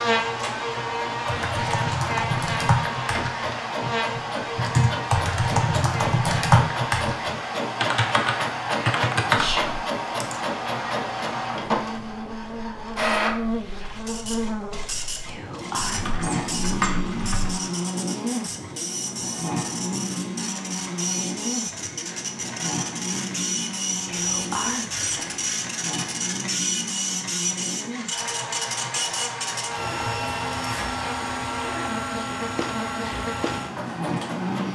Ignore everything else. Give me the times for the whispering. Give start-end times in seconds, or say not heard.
9.3-9.8, 15.2-17.0, 24.1-25.6.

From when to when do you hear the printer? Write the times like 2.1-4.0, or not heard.
0.0-34.7.